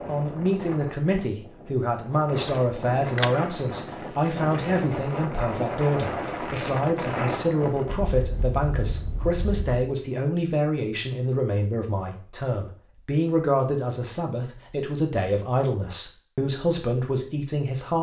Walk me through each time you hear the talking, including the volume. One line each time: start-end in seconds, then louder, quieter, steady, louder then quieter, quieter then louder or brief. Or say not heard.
0.1-17.9 steady.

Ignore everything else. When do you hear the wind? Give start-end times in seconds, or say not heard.
0.0-9.8.